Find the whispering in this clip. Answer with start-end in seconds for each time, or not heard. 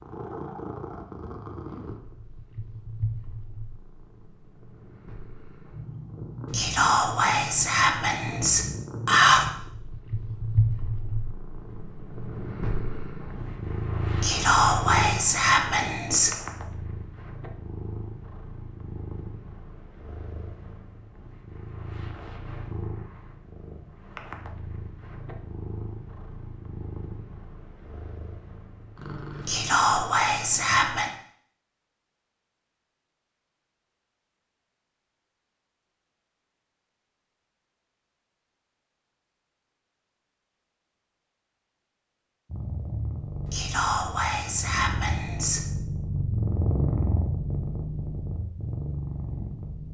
6.5-9.4, 14.2-16.4, 29.4-31.1, 43.5-45.6.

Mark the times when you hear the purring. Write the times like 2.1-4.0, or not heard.
0.0-30.3, 42.5-49.8.